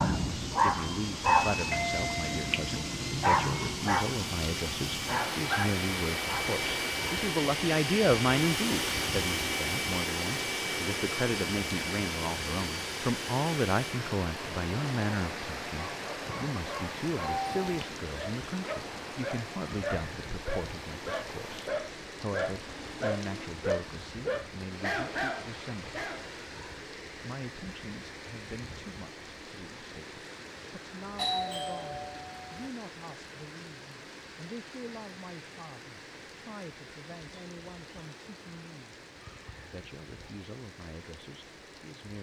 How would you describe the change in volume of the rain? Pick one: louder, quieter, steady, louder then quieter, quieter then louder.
quieter.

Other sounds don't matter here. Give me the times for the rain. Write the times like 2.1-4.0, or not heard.
0.0-42.1.